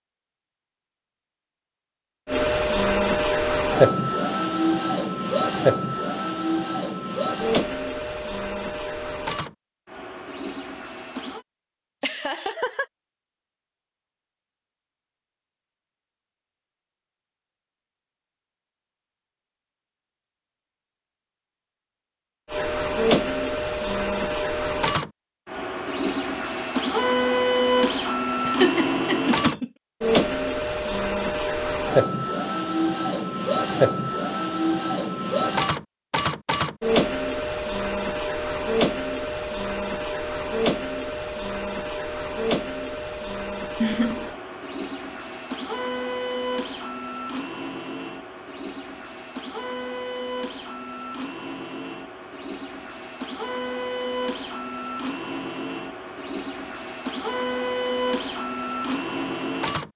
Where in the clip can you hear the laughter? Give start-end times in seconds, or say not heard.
12.0-12.8, 28.4-29.7, 43.8-44.3.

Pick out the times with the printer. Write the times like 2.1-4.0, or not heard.
2.2-11.4, 22.5-59.9.